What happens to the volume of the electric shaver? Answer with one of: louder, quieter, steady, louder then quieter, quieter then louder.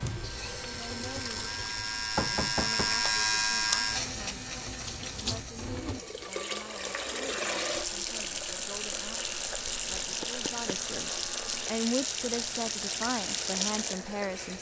quieter.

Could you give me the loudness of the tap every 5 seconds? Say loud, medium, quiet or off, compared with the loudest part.
medium, loud, loud.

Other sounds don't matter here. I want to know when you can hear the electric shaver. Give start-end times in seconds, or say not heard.
0.0-14.5.